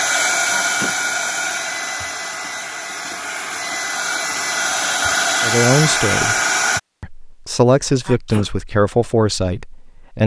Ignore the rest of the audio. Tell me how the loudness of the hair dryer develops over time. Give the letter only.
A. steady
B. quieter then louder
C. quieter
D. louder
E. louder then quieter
B.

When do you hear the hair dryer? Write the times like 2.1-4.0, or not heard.
0.0-6.8.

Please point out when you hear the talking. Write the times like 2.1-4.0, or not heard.
5.4-6.3, 7.0-10.2.